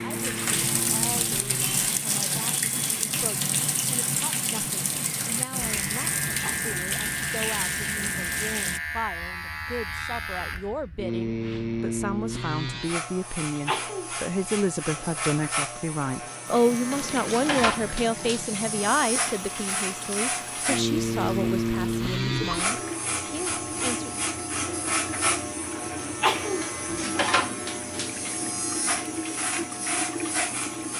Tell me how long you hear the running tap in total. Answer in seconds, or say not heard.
23 s.